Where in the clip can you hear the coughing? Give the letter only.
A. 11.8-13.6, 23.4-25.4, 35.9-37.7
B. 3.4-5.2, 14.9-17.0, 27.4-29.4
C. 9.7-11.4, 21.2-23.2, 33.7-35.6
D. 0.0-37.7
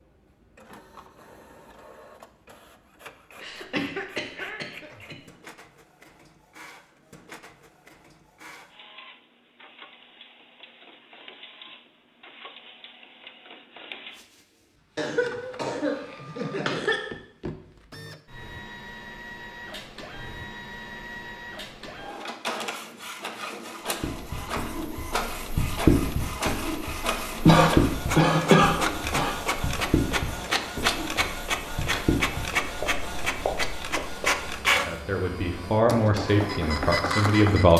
B.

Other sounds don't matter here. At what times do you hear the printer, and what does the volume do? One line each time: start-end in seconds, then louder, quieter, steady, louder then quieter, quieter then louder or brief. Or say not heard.
0.0-37.7 louder.